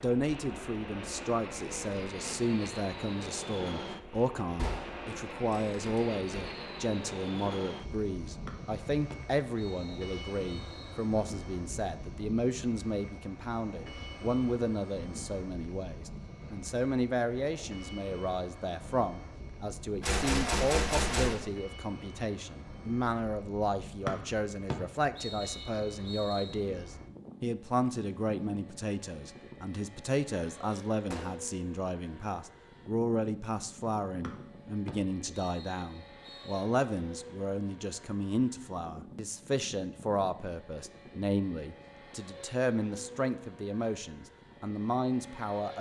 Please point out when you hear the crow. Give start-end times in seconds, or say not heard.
not heard.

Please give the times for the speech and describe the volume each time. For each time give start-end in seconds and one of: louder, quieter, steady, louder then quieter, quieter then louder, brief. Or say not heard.
0.0-45.7 steady.